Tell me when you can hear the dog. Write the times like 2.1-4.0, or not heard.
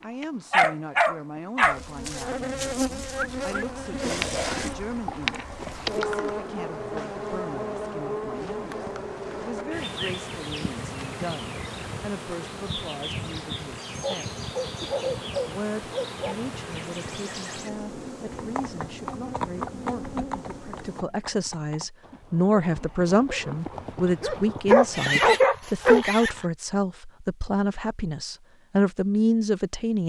0.5-1.8, 14.0-16.4, 24.7-26.3.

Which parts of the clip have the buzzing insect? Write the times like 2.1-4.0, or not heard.
1.6-21.1.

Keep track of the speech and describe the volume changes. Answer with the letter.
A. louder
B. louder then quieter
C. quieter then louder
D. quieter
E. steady
A.